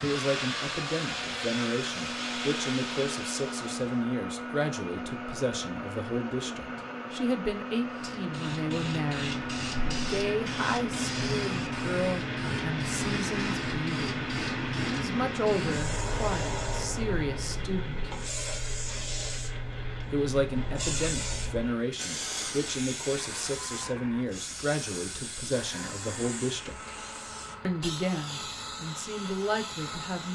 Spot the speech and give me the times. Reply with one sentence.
You can hear the speech from 0.0 to 14.2 s, from 14.8 to 18.1 s, from 20.1 to 26.9 s and from 27.6 to 30.3 s.